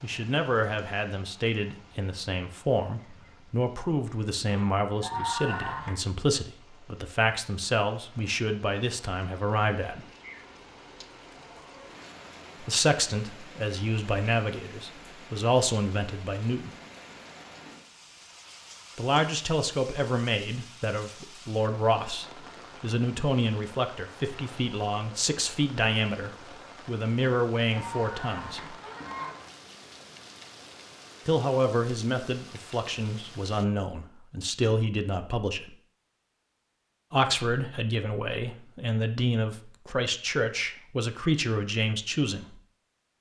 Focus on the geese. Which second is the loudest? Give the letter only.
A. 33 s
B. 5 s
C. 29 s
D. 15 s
B.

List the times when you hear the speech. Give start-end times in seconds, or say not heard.
0.0-10.1, 12.6-16.8, 18.9-28.8, 31.2-35.8, 37.1-42.6.